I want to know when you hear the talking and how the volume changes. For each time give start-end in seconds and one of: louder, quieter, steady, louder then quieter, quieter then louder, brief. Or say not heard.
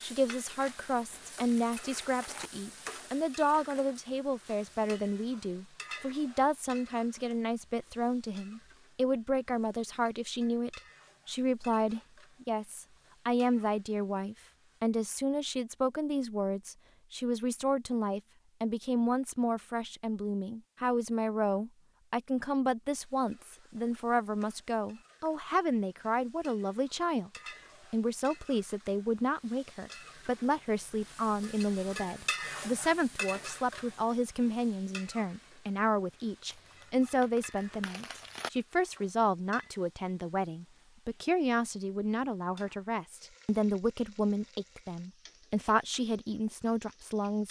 0.0-27.3 steady
27.9-47.4 steady.